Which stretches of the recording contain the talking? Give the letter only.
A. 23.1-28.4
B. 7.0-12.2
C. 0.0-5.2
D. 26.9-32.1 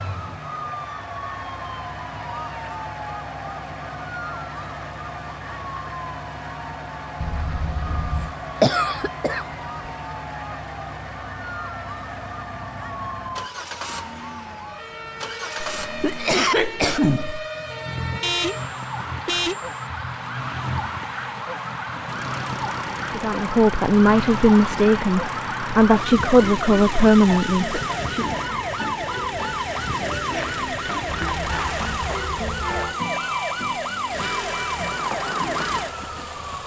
A.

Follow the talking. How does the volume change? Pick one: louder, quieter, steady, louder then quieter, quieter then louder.
steady.